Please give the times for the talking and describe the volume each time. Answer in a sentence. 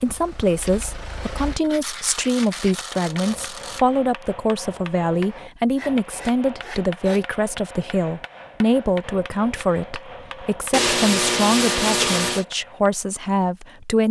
You can hear the talking from 0.0 to 14.0 s, at a steady volume.